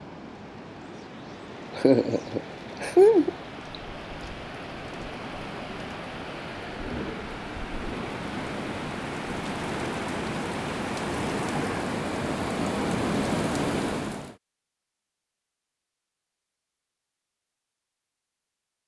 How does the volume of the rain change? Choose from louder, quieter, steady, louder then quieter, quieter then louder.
louder.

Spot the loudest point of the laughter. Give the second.
3 s.